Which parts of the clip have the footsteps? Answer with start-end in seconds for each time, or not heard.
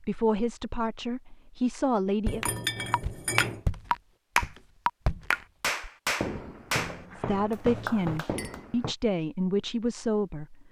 2.2-8.9.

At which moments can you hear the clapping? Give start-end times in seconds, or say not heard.
2.4-8.6.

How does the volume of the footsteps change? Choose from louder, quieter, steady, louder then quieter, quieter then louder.
quieter then louder.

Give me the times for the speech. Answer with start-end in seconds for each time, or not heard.
0.0-2.5, 7.2-10.6.